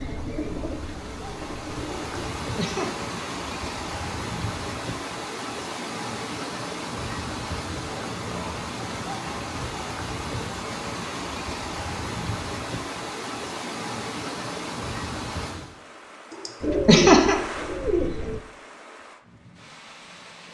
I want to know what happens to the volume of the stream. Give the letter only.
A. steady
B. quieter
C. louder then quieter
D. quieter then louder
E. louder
B.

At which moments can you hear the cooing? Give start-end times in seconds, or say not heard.
0.0-2.4, 16.6-18.4.